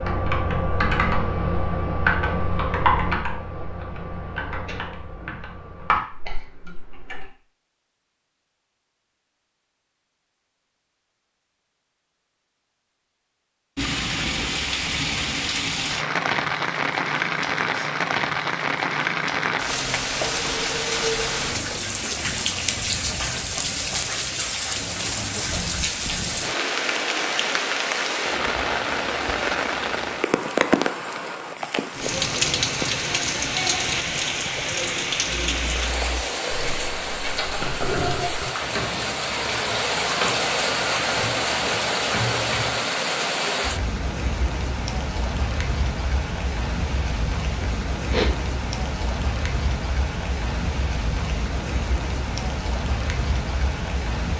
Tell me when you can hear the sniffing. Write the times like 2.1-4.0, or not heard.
47.6-48.4.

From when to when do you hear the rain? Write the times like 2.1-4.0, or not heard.
13.8-54.3.